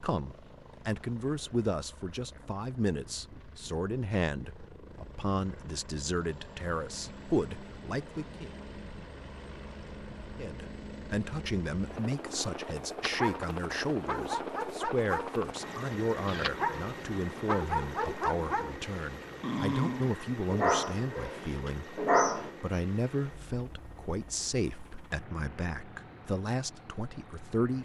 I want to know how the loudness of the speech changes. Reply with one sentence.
The loudness of the speech stays about the same.